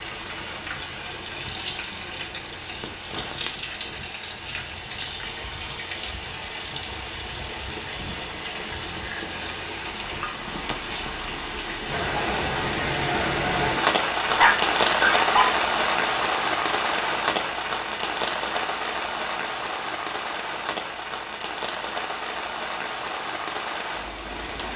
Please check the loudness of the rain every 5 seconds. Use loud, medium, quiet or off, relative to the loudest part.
medium, medium, loud, loud, medium.